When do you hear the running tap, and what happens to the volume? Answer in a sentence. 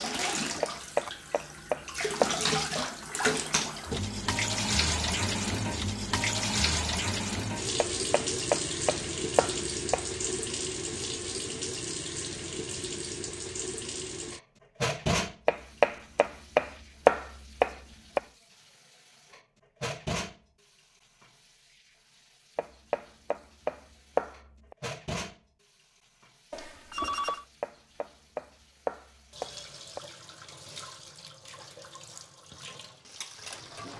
You can hear the running tap from 0.0 to 33.9 s, getting quieter.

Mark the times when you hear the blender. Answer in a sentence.
You can't hear the blender here.